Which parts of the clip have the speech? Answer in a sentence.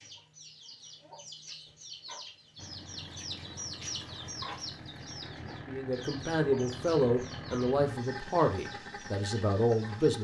The speech can be heard from 5.7 to 10.1 s.